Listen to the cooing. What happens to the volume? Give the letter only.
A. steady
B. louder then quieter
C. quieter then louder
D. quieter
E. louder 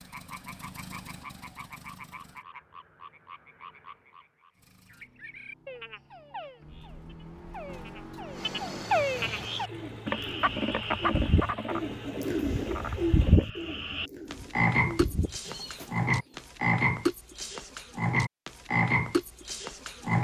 B.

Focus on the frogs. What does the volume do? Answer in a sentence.
The loudness of the frogs goes up.